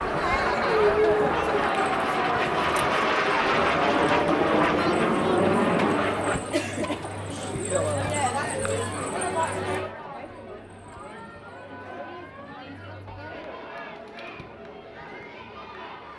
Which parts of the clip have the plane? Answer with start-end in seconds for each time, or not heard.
0.0-6.4.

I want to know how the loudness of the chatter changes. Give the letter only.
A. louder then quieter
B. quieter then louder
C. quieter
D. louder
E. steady
C.